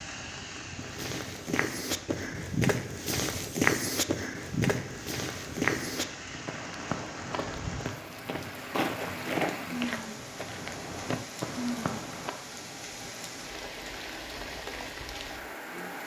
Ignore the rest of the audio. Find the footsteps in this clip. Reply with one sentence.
You can hear the footsteps from 0.8 to 12.3 s.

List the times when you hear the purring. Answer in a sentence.
The purring can't be heard in this clip.